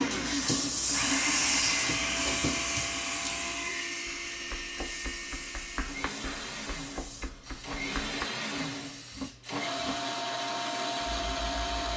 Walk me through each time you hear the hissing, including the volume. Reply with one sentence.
You can hear the hissing from 0.0 to 11.9 s, getting quieter.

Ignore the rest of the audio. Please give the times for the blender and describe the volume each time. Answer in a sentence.
You can hear the blender from 0.0 to 11.9 s, getting quieter then louder.